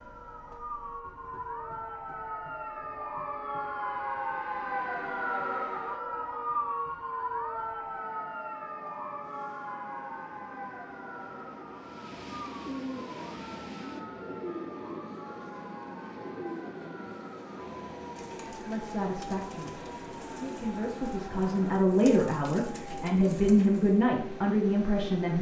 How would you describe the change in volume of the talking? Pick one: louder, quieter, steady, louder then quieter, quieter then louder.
louder.